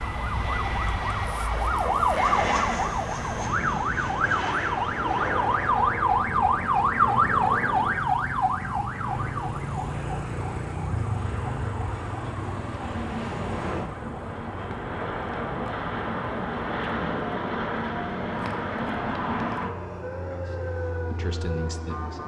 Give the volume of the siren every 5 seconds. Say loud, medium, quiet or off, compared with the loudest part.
loud, loud, medium, quiet, quiet.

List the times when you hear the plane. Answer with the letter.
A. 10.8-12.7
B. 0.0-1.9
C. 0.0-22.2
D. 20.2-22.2
C.